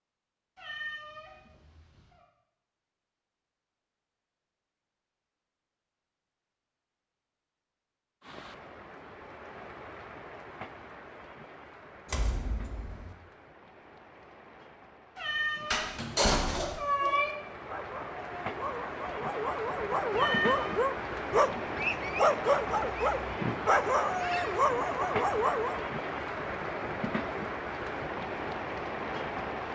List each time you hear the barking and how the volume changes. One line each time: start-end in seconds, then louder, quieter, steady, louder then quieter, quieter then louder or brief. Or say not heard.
16.1-25.9 louder.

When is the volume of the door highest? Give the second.
16 s.